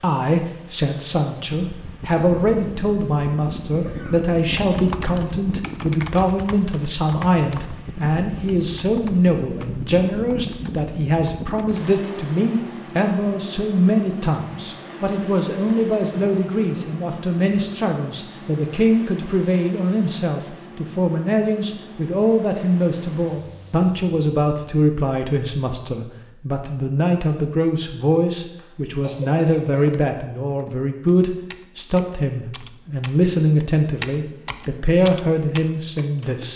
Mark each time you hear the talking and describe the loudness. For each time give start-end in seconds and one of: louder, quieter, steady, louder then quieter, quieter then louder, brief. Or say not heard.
0.0-36.5 steady.